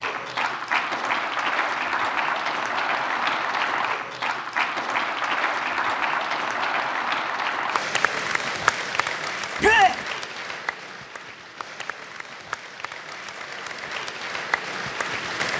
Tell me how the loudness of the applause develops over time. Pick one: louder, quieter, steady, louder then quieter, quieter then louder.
quieter.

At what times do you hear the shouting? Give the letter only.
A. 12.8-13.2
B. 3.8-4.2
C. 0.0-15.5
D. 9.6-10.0
D.